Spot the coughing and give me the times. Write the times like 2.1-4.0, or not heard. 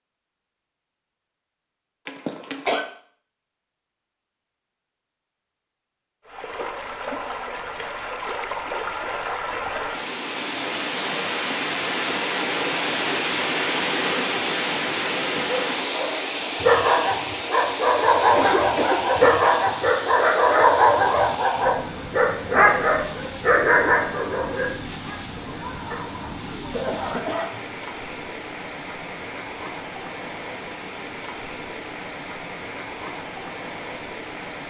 2.0-2.9, 18.1-19.4, 25.4-27.6.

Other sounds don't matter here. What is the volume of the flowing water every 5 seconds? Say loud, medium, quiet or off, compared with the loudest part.
off, medium, loud, loud, medium, medium, medium.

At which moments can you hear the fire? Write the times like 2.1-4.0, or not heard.
not heard.